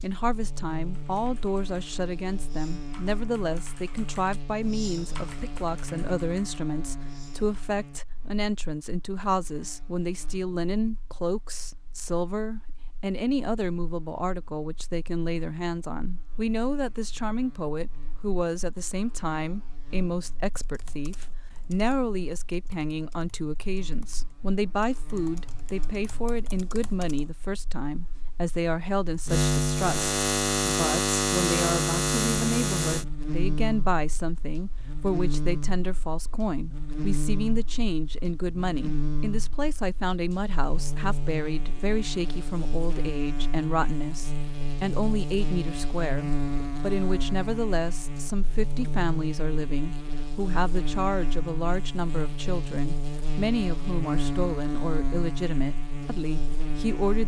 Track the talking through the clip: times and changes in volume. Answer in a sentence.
You can hear the talking from 0.0 to 57.2 s, at a steady volume.